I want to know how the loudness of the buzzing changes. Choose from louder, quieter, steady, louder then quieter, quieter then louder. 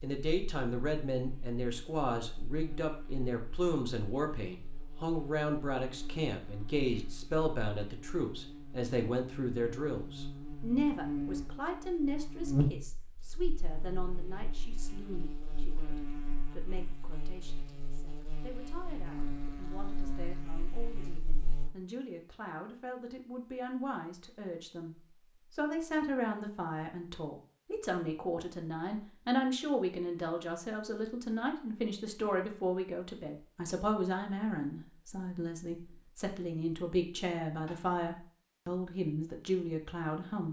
louder then quieter.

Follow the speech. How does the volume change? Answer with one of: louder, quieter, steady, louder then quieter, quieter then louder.
quieter then louder.